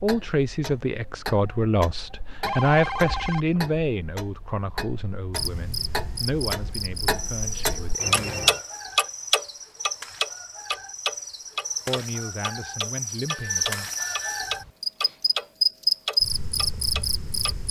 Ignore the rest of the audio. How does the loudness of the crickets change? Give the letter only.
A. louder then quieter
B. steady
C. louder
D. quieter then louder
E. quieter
C.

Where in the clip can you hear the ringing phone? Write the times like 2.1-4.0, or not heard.
2.4-3.6, 8.0-8.6, 13.2-14.6.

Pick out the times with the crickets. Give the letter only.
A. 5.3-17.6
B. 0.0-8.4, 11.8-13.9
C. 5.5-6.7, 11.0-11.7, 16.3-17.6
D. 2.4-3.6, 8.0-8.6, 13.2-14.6
A.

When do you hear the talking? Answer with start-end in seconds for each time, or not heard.
0.0-8.4, 11.8-13.9.